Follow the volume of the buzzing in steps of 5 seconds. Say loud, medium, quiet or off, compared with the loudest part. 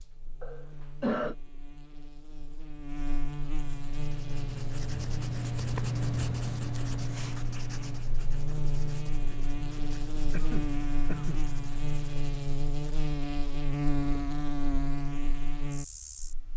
medium, medium, loud, medium.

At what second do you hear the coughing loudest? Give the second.
1 s.